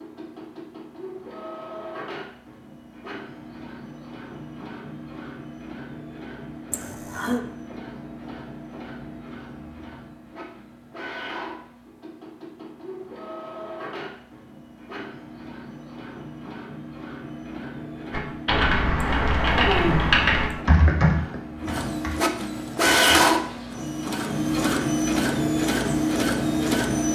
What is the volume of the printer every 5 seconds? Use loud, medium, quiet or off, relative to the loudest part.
quiet, quiet, quiet, quiet, loud, loud.